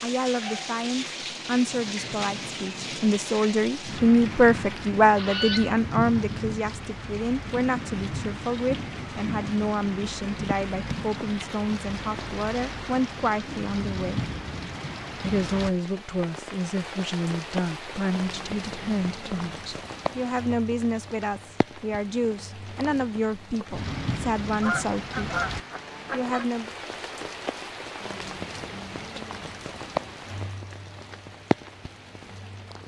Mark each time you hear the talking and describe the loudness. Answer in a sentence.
You can hear the talking from 0.0 to 14.2 s, getting louder then quieter; from 15.2 to 25.2 s, at a steady volume; and briefly from 26.1 to 26.7 s.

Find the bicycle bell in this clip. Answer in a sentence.
The bicycle bell can't be heard in this clip.